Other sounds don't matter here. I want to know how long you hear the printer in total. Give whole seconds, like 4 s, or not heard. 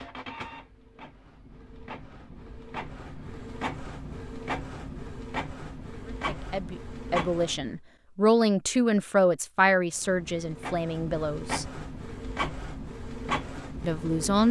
12 s.